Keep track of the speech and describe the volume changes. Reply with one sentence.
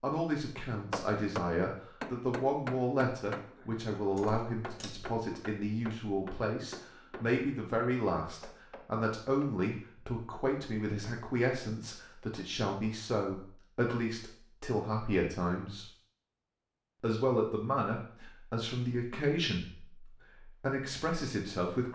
The volume of the speech stays about the same.